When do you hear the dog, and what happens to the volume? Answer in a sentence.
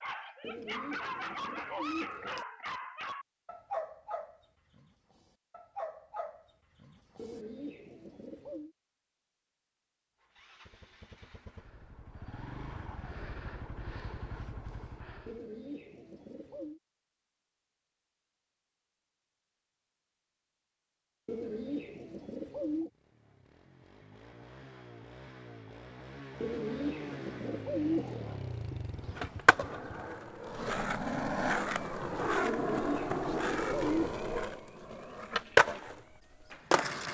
The dog can be heard from 0.0 to 7.5 s, getting quieter then louder.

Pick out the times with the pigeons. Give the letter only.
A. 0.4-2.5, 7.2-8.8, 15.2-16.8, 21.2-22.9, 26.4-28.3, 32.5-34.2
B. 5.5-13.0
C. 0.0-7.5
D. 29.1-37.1
A.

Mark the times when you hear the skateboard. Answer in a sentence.
The skateboard can be heard from 29.1 to 37.1 s.